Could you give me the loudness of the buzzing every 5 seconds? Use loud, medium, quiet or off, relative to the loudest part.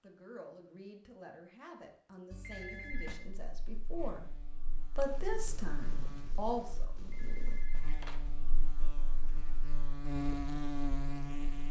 quiet, quiet, loud.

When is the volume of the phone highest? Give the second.
3 s.